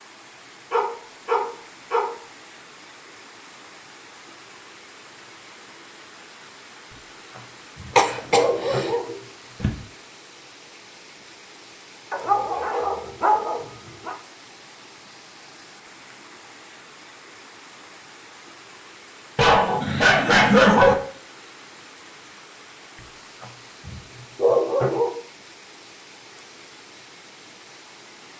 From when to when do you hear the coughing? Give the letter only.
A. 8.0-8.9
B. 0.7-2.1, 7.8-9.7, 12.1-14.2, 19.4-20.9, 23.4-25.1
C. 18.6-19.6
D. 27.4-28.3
A.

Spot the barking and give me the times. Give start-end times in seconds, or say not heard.
0.7-2.1, 7.8-9.7, 12.1-14.2, 19.4-20.9, 23.4-25.1.